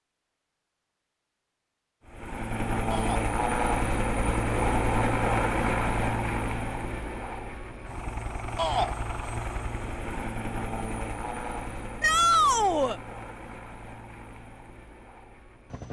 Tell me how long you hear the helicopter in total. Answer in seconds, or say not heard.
14 s.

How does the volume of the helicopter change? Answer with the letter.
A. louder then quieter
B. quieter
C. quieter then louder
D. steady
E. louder
B.